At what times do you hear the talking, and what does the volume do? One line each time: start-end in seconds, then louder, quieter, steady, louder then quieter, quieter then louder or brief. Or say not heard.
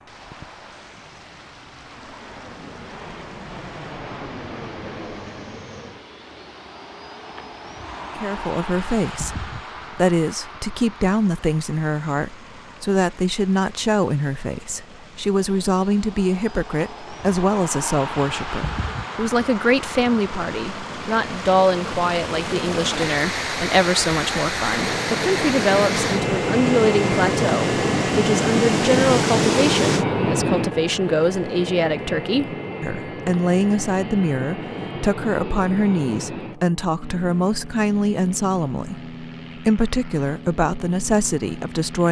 8.2-42.0 steady.